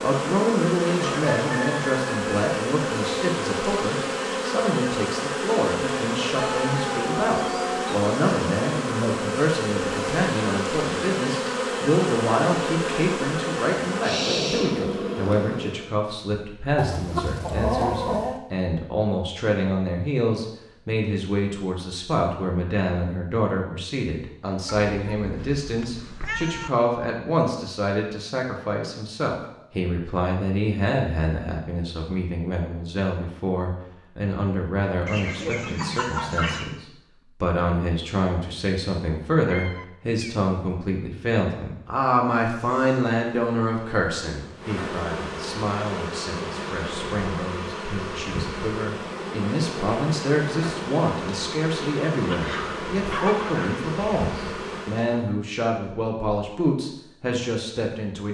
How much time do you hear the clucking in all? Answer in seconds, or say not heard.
6 s.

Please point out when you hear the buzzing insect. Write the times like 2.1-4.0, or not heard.
0.0-15.9, 42.5-55.2.